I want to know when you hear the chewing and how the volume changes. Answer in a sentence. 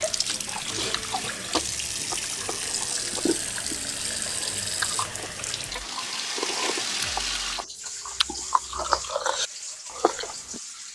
The chewing can be heard from 0.5 to 10.6 s, getting louder.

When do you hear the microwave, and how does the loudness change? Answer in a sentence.
You can't hear the microwave here.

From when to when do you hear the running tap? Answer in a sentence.
You can hear the running tap from 0.0 to 10.8 s.